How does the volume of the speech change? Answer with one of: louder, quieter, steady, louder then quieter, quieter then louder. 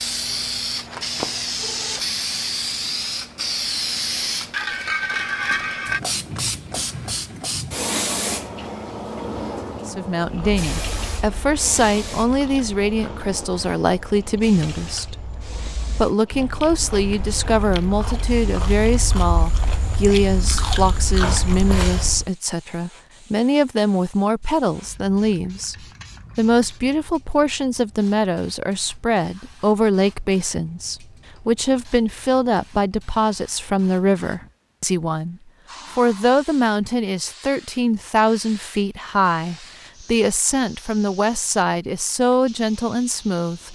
steady.